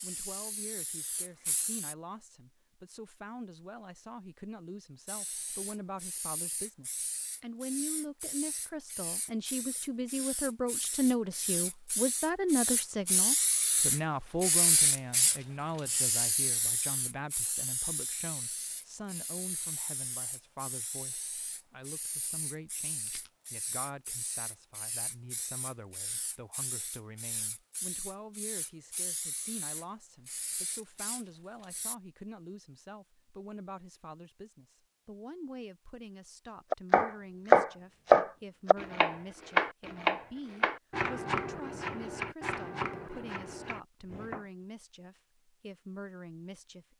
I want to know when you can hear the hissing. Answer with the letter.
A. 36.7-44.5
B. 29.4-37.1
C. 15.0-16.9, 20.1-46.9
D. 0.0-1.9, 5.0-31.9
D.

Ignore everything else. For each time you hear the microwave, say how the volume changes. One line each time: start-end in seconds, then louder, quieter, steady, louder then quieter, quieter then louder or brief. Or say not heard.
not heard.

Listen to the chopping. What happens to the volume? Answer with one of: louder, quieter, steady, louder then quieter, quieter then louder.
quieter.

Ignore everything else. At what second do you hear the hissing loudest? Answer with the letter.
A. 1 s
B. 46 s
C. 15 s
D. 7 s
C.